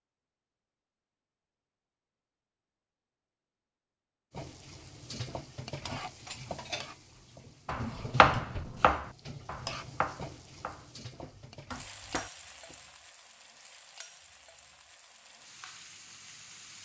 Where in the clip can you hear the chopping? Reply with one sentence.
The chopping can be heard from 7.7 to 12.8 s.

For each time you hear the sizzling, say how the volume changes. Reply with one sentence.
You can hear the sizzling from 4.3 to 16.8 s, getting quieter.